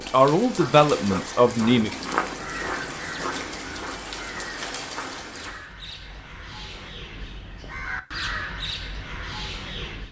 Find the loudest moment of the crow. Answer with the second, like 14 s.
8 s.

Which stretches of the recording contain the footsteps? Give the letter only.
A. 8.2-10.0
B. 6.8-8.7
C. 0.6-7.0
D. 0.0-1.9
C.